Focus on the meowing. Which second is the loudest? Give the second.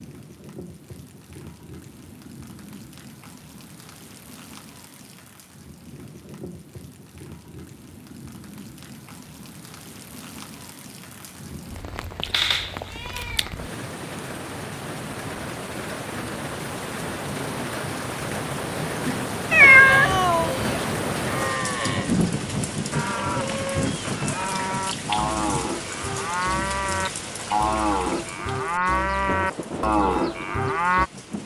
20 s.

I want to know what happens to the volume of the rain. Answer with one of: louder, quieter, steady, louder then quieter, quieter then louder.
louder then quieter.